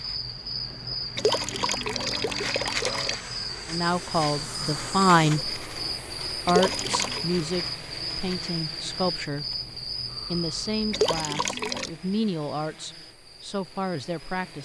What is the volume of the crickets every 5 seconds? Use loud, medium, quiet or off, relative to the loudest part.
loud, loud, medium.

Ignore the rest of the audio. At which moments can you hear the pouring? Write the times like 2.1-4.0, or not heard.
1.1-3.1, 6.5-7.2, 10.9-11.9.